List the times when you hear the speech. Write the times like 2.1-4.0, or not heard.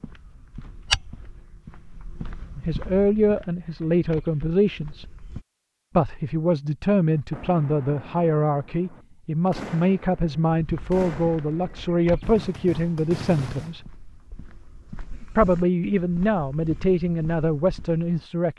2.5-5.0, 6.0-13.8, 15.3-18.5.